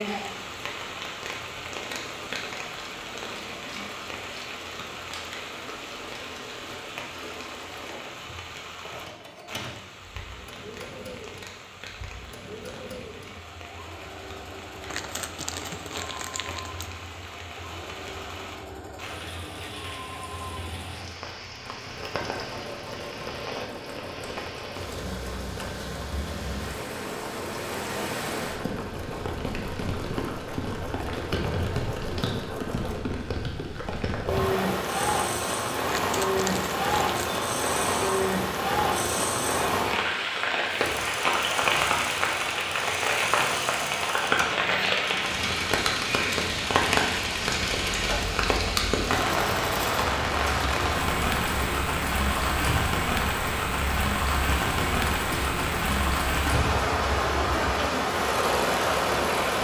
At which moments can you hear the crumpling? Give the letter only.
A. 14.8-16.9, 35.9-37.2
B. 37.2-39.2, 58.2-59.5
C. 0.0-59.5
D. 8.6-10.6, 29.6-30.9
A.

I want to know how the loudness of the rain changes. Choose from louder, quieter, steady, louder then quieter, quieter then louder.
louder.